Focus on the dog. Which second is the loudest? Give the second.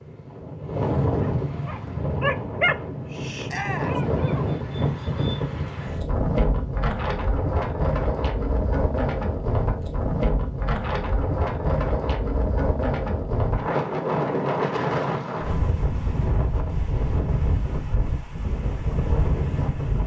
3 s.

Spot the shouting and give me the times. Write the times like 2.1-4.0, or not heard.
3.5-4.0.